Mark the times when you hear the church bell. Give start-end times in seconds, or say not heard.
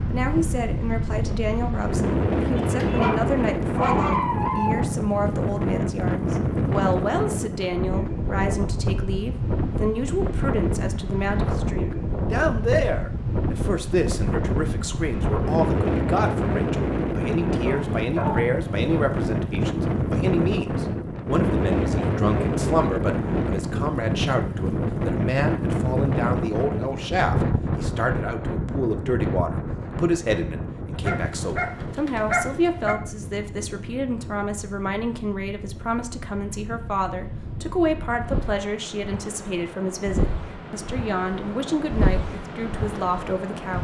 not heard.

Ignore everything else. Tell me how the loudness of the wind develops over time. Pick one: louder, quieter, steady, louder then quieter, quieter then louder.
quieter.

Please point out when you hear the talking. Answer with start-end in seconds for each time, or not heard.
0.1-43.7.